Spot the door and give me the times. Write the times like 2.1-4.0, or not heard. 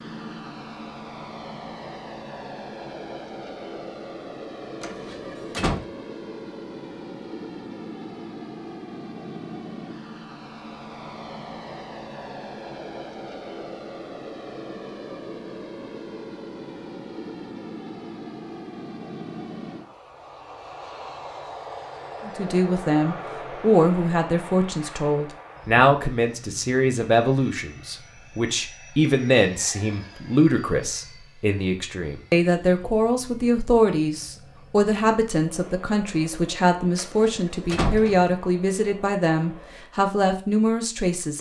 4.8-5.8, 37.0-38.3.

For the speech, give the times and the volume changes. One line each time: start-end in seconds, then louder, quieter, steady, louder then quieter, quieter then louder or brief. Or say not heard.
22.2-41.3 steady.